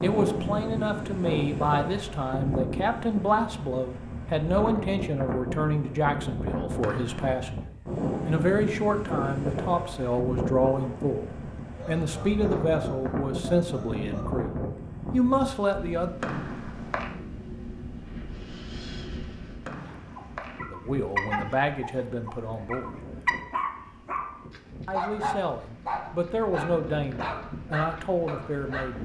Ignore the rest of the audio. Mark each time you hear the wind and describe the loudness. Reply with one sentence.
You can hear the wind from 0.0 to 29.0 s, getting quieter.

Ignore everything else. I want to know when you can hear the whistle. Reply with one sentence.
The whistle can be heard from 6.8 to 7.3 s, from 16.2 to 17.2 s and from 19.6 to 20.6 s.